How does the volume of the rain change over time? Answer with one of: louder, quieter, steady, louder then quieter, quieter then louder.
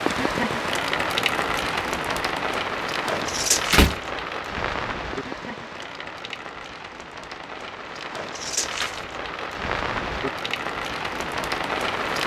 quieter then louder.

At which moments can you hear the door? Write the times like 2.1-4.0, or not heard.
3.2-4.0.